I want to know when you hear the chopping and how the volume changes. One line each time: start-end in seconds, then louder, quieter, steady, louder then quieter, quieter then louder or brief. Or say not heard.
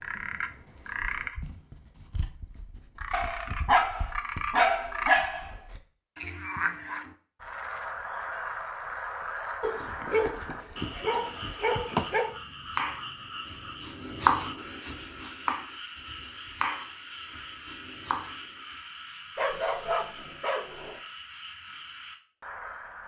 12.7-18.4 louder then quieter.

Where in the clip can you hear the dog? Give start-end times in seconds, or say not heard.
3.1-5.5, 9.6-12.3, 19.4-21.0.